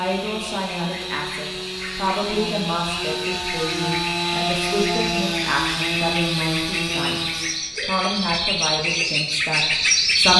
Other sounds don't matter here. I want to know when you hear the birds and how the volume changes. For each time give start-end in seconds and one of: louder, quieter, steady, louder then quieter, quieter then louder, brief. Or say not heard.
0.1-10.3 louder.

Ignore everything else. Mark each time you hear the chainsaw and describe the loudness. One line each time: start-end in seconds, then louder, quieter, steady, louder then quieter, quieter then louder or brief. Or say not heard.
0.0-7.7 louder.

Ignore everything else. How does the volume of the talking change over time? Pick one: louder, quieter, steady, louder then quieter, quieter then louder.
steady.